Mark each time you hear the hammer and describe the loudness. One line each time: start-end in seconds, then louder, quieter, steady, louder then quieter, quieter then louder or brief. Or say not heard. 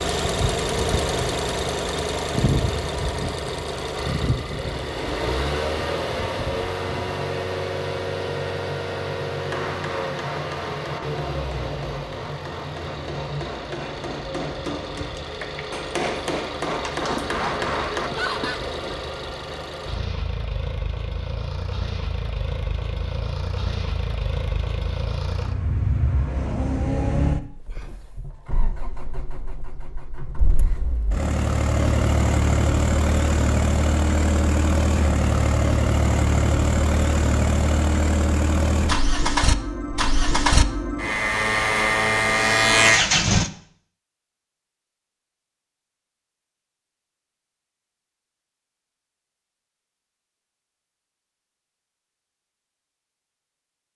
9.5-18.1 louder.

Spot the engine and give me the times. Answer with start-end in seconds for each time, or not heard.
0.0-43.5.